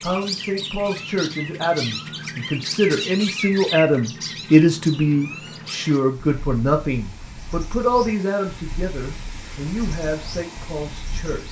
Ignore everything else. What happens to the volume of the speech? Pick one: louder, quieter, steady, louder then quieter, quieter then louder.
louder then quieter.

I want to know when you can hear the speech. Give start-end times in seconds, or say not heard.
0.0-11.4.